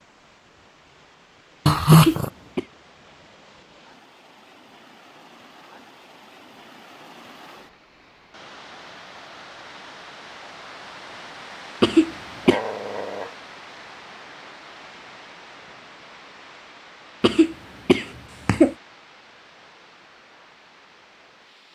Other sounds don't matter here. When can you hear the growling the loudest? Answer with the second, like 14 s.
2 s.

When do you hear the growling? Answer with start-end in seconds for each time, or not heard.
1.6-2.3, 12.4-13.3.